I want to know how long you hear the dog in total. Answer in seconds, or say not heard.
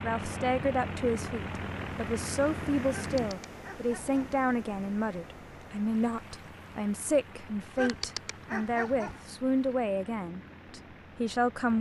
3 s.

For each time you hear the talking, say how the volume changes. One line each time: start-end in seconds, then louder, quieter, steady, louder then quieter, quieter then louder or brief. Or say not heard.
0.0-11.7 steady.